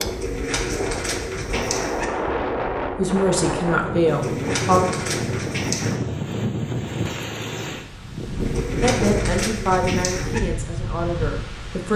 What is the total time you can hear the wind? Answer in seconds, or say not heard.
12 s.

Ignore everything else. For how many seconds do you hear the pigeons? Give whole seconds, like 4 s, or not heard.
6 s.